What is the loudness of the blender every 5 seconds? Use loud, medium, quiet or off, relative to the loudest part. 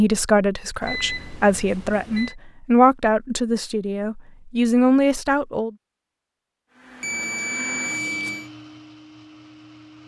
off, loud.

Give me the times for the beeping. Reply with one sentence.
You can hear the beeping from 0.8 to 2.4 s and from 7.0 to 8.5 s.